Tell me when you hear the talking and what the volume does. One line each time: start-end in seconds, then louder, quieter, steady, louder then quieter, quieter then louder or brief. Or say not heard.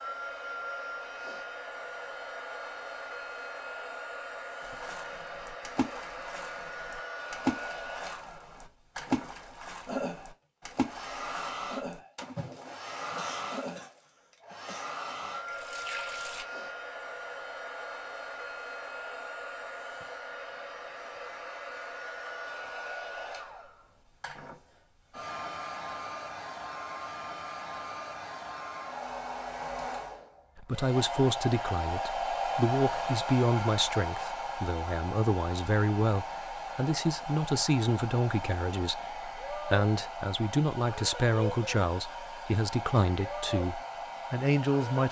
30.6-45.0 steady.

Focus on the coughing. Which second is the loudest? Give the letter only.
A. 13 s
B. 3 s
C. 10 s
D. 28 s
A.